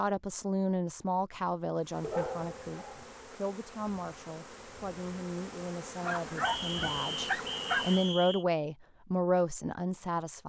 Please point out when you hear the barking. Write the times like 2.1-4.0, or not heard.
2.0-3.1, 6.0-8.0.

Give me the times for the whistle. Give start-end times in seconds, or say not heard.
6.4-8.4.